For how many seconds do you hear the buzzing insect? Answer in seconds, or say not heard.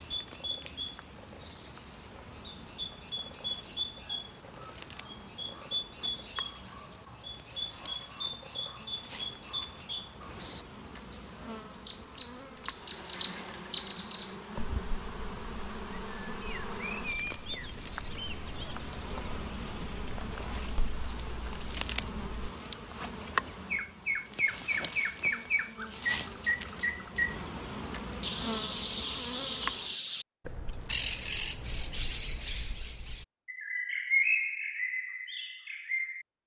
30 s.